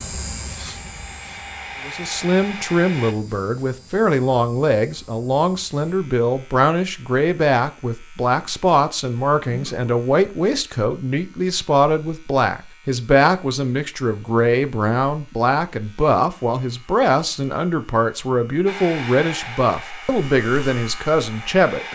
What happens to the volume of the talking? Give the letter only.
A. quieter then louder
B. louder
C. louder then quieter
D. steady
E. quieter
D.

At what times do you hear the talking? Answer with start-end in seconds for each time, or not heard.
1.9-21.8.